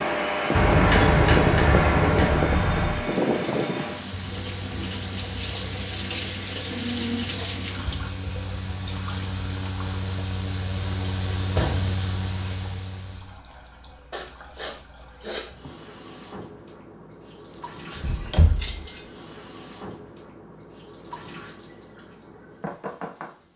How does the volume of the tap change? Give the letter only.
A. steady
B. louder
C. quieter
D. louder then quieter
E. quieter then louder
E.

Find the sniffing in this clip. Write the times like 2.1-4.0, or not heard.
14.1-15.6.